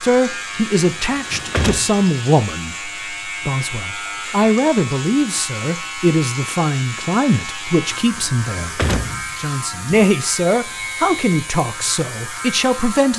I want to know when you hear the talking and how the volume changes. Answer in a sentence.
The talking can be heard from 0.0 to 13.1 s, at a steady volume.